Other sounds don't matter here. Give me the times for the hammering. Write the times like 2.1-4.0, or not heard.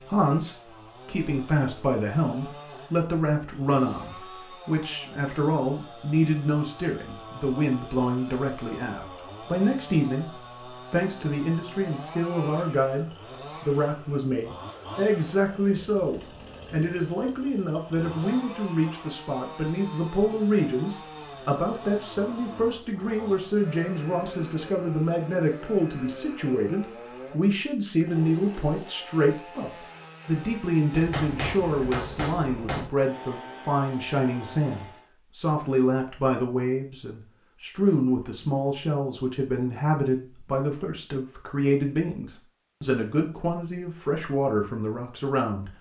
30.9-32.9.